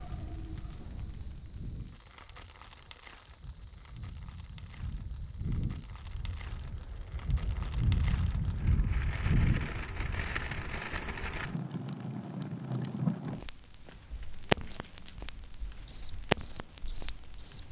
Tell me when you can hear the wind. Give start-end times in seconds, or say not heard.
0.0-10.7.